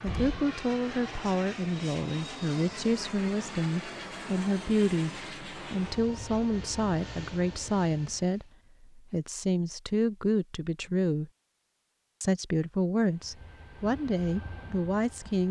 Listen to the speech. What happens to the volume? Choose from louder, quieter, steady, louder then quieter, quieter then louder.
steady.